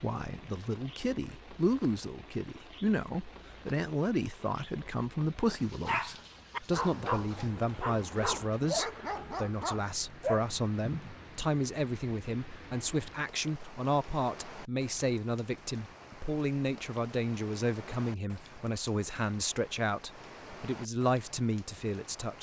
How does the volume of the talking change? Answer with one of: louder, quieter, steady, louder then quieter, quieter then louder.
steady.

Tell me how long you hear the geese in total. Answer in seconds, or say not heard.
not heard.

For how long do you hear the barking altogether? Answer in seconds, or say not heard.
5 s.